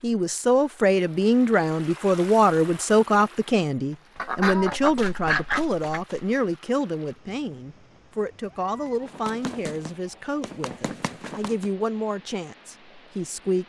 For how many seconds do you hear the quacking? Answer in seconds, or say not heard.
2 s.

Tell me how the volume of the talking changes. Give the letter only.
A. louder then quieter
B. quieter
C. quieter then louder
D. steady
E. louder
B.